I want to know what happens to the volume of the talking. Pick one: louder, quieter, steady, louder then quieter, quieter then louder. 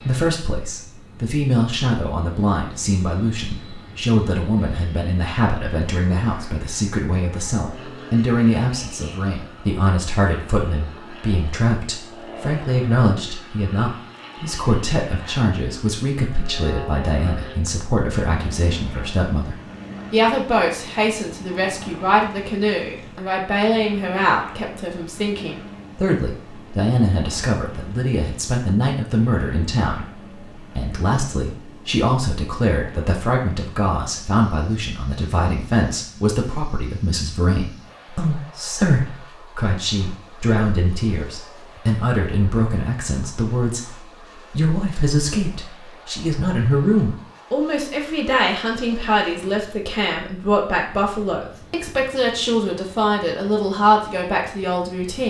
steady.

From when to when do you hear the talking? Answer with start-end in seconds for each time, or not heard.
0.0-55.2.